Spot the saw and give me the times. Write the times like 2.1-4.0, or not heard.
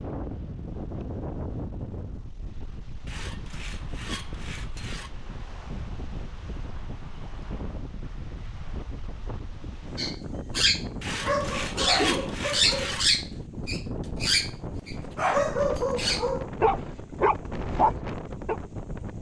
3.0-5.2, 11.0-13.2.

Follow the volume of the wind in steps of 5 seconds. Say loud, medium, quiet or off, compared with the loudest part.
loud, medium, loud, loud.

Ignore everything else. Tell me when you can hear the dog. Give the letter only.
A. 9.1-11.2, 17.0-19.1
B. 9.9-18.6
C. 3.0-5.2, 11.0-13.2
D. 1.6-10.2
B.